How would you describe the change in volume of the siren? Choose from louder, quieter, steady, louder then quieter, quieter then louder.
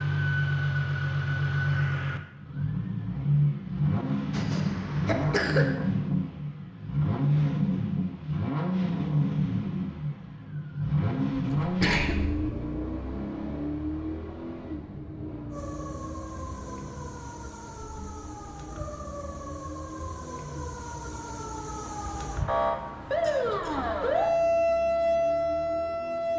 louder.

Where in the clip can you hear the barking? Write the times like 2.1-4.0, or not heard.
not heard.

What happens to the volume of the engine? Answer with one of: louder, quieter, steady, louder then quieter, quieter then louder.
quieter.